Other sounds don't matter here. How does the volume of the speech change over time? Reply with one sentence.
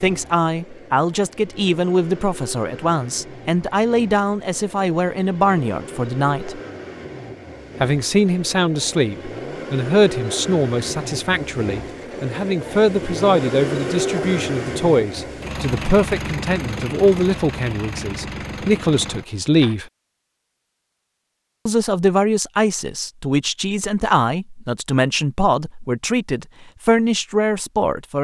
The volume of the speech stays about the same.